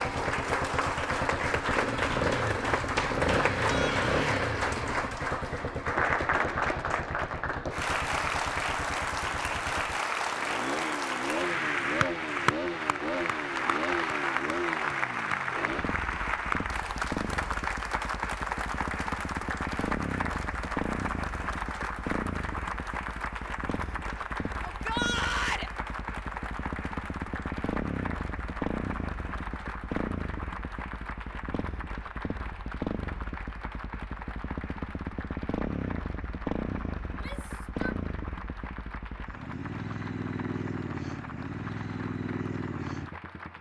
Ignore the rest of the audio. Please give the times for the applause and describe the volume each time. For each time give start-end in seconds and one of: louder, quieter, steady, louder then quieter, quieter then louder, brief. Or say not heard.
0.0-43.5 quieter.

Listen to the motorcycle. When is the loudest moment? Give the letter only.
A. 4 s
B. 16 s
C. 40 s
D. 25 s
A.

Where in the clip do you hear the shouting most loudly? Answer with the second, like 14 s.
25 s.